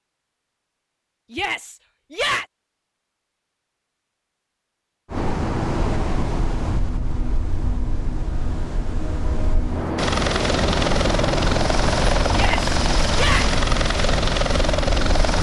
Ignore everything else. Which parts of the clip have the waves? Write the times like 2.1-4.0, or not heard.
5.1-15.3.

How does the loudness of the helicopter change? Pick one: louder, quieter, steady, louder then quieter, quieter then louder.
steady.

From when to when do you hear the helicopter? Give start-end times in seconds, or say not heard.
9.9-15.3.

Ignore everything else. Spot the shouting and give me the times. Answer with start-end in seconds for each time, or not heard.
1.3-2.5, 12.3-13.4.